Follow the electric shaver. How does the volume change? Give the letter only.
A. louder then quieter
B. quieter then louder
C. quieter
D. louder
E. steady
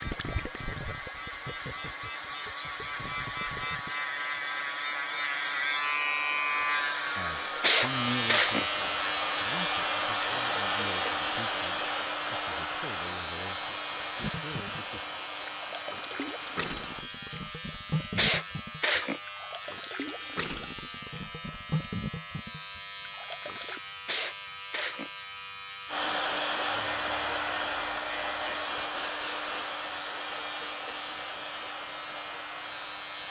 C.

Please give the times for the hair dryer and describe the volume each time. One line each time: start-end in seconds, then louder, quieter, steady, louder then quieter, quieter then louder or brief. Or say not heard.
0.0-17.1 louder then quieter
25.9-33.2 quieter.